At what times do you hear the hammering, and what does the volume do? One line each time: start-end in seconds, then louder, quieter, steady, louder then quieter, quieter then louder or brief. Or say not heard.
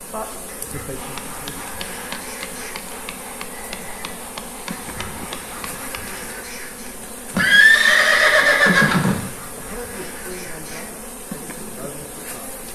0.9-6.2 steady.